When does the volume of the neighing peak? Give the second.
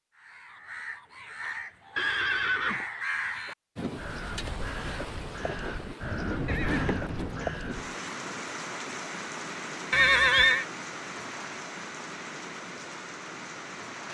10 s.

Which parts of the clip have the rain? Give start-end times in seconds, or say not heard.
3.8-14.0.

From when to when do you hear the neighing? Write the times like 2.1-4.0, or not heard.
1.9-2.9, 6.5-7.2, 9.9-10.7.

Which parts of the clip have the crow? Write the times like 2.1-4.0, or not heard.
0.1-8.0.